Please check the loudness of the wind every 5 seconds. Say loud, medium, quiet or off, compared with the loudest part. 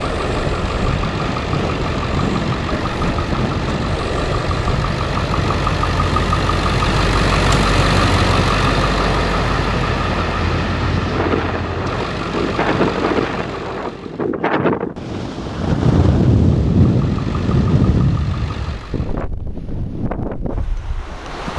medium, medium, loud, loud, medium.